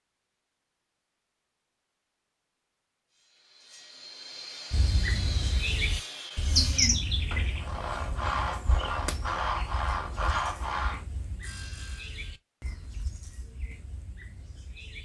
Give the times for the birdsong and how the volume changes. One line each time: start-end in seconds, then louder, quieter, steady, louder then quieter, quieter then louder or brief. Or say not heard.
4.7-14.9 quieter.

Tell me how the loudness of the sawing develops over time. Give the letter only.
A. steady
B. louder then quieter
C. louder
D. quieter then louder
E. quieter
C.